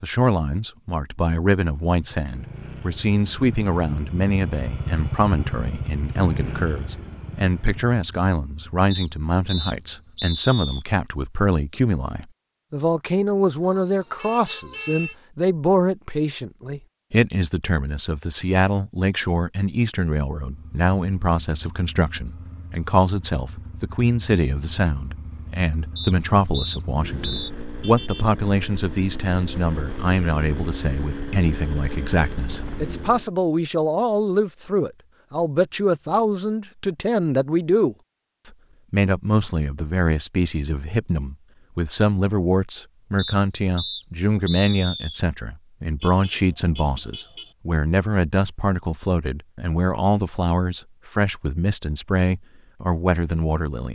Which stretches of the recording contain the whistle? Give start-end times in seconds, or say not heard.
8.9-10.8, 25.9-27.5, 43.1-45.2.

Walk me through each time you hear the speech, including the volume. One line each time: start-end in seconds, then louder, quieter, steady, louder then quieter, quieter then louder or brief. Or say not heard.
0.0-53.8 steady.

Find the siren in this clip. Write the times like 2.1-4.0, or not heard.
not heard.